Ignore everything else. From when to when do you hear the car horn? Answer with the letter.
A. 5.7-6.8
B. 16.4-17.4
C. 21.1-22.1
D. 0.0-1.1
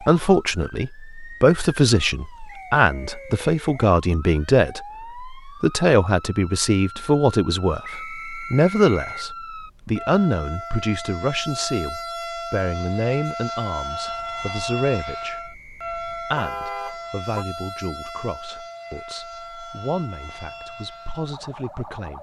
B.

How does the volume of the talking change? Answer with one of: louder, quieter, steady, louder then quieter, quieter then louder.
quieter.